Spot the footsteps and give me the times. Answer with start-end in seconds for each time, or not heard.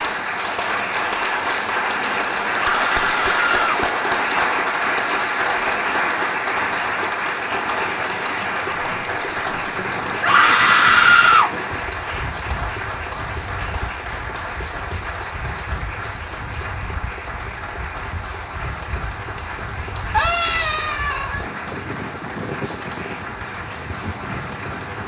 not heard.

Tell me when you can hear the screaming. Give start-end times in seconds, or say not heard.
2.5-3.8, 10.2-11.5, 20.1-21.4.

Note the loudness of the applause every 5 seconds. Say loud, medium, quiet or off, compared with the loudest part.
loud, loud, medium, medium, medium.